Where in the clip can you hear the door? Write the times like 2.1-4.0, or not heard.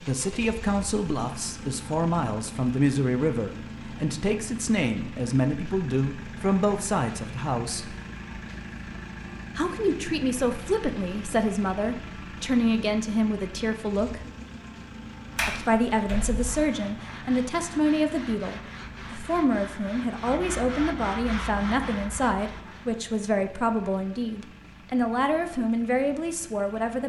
15.3-16.6.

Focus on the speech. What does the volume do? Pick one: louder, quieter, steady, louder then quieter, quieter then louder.
steady.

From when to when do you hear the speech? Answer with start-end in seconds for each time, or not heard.
0.0-8.0, 9.6-14.2, 15.4-27.0.